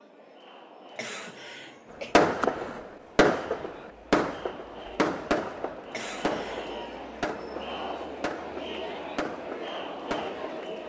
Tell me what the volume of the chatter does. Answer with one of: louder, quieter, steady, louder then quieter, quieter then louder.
louder.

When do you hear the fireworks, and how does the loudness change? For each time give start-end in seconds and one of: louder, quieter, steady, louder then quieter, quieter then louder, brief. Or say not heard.
2.1-10.6 quieter.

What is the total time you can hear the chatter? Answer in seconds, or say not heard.
11 s.